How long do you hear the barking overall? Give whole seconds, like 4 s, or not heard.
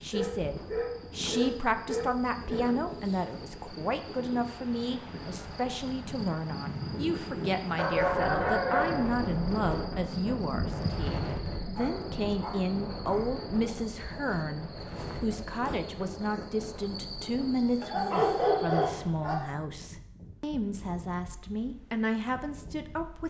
7 s.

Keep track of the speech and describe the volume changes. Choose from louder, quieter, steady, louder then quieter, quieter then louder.
steady.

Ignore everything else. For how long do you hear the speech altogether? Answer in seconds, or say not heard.
23 s.